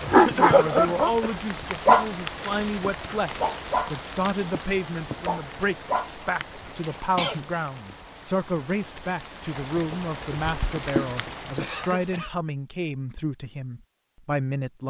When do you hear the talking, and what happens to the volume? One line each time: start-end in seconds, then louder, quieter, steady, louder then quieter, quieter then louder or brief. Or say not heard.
0.0-14.8 steady.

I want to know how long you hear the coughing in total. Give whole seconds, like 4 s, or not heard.
3 s.